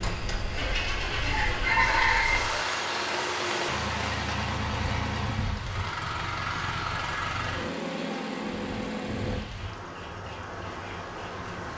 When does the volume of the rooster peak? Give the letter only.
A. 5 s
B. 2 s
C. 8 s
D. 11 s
B.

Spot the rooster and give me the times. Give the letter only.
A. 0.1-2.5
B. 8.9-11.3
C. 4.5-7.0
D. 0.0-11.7
A.